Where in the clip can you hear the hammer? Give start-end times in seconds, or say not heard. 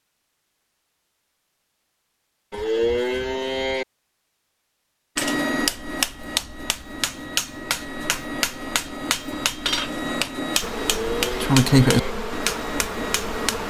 5.2-13.6.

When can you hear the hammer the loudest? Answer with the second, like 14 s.
12 s.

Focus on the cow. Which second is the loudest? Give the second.
3 s.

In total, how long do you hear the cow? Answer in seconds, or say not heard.
3 s.